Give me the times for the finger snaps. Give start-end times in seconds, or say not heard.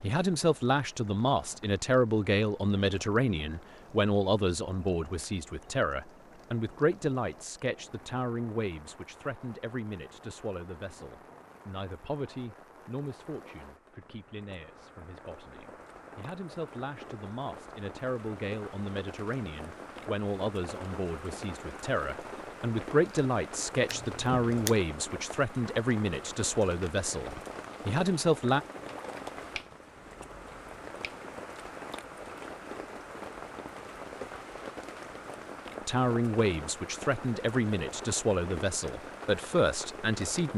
29.6-31.2.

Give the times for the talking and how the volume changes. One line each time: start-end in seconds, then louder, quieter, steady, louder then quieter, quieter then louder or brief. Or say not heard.
0.0-28.6 quieter then louder
35.9-40.5 steady.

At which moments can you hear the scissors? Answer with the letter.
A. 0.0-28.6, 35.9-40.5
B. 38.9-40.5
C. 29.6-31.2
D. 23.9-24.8
D.